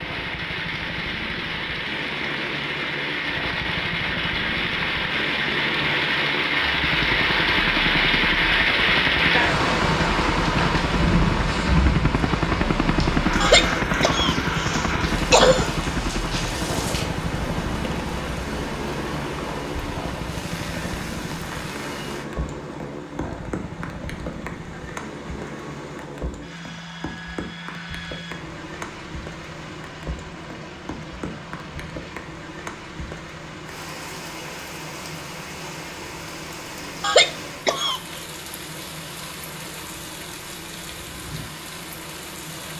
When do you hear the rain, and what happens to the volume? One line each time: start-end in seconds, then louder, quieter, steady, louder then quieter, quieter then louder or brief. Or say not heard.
0.0-42.7 quieter.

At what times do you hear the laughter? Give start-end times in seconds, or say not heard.
13.4-15.7, 37.0-38.2.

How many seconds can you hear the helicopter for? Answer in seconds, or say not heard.
43 s.